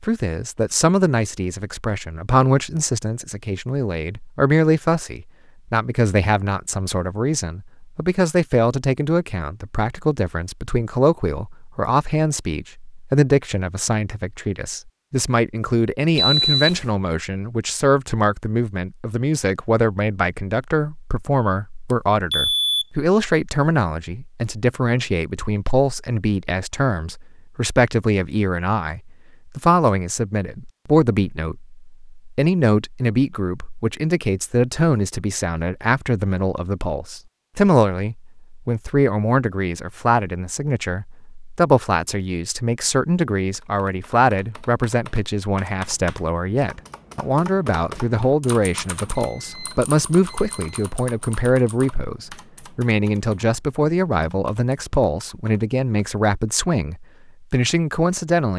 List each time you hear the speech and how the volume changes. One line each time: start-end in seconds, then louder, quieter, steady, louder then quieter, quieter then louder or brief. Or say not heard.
0.0-58.5 steady.